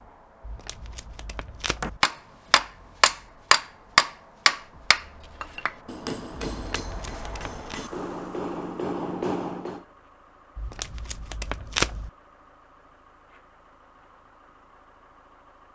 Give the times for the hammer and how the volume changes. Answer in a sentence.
You can hear the hammer from 1.8 to 9.8 s, getting quieter then louder.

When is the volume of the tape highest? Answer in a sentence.
The loudest moment of the tape is at 12 seconds.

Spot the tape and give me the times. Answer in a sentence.
You can hear the tape from 0.4 to 2.0 s, from 6.5 to 7.8 s and from 10.6 to 12.1 s.